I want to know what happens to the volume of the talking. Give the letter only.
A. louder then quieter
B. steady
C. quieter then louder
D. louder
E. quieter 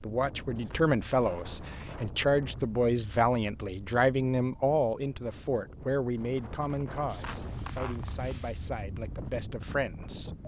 E.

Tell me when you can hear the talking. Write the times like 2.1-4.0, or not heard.
0.0-10.3.